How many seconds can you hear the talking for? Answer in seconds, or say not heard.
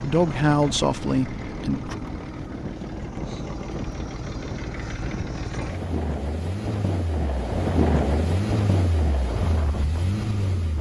2 s.